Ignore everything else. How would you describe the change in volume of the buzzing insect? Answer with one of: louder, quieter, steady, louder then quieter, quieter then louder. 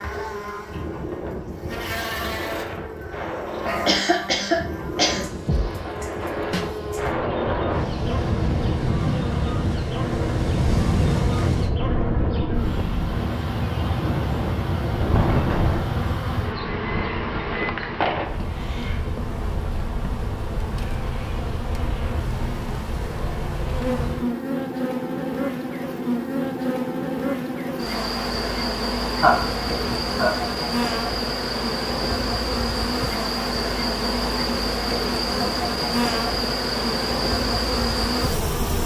louder.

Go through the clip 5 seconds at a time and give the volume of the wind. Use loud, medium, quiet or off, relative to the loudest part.
medium, loud, loud, loud, off, off, off, off.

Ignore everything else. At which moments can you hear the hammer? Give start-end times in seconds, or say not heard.
not heard.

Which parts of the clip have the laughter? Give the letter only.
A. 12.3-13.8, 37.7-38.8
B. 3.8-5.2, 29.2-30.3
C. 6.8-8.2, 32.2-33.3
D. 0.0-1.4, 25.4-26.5
B.